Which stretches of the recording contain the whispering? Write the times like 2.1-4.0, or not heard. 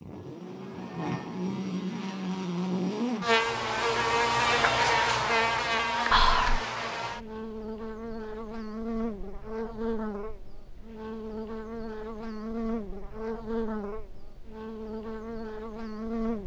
6.1-6.7.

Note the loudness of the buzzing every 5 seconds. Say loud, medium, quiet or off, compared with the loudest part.
loud, loud, medium, medium.